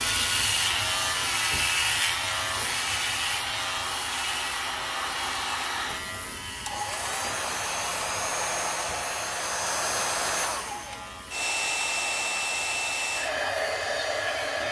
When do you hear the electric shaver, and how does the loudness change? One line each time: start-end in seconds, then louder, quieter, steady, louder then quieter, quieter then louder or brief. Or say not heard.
0.0-14.6 quieter.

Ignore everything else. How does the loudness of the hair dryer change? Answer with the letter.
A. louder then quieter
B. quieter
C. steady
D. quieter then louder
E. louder
E.